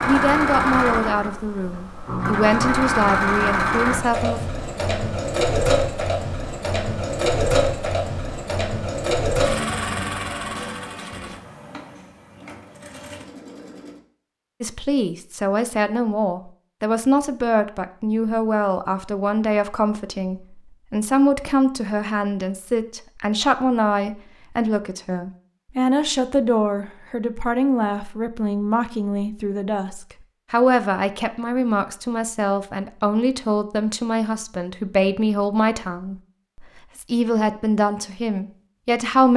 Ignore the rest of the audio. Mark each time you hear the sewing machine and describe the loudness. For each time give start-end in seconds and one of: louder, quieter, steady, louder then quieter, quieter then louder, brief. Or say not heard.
0.0-14.0 quieter.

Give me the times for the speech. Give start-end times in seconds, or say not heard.
0.0-4.4, 14.6-39.3.